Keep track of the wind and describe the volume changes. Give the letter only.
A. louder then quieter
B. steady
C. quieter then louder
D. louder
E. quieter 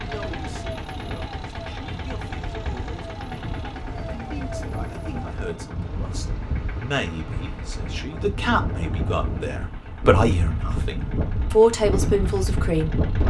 D.